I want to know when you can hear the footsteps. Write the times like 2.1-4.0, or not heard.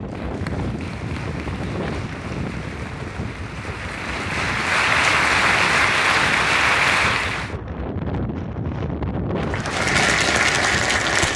not heard.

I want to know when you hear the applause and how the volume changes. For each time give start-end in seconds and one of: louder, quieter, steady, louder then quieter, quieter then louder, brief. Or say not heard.
0.0-7.5 louder
9.3-11.3 brief.